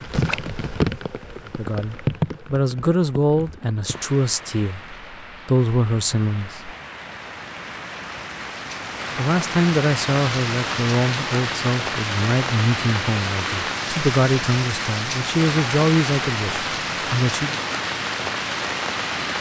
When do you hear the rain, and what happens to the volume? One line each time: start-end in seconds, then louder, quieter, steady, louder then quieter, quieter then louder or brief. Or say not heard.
0.0-19.3 quieter then louder.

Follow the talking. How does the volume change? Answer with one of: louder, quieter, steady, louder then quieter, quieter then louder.
steady.